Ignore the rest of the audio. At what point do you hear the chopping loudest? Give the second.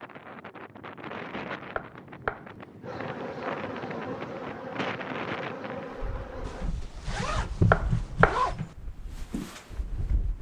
8 s.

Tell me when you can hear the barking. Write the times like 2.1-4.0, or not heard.
not heard.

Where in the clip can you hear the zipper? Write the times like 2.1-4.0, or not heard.
6.5-8.7.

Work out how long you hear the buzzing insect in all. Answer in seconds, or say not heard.
4 s.